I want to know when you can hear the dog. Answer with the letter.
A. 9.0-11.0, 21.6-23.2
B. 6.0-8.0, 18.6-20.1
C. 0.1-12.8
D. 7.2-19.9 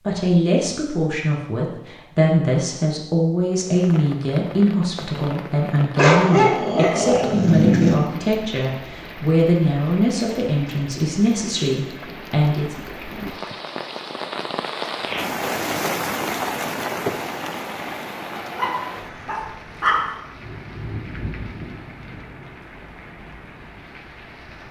B.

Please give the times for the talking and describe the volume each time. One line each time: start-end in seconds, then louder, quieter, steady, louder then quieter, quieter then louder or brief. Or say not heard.
0.1-12.8 steady.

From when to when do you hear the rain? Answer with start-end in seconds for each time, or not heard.
3.5-24.6.